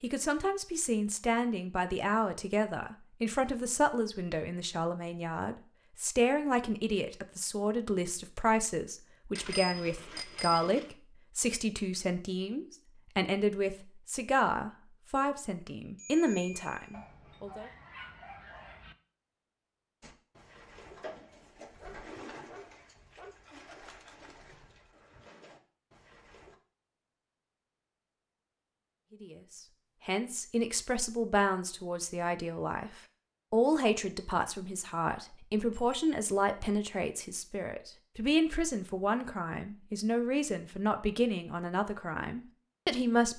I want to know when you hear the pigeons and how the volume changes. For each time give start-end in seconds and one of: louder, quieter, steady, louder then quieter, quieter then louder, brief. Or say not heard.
20.0-26.6 quieter.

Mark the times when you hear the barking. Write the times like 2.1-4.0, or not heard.
16.9-18.9, 21.8-23.4.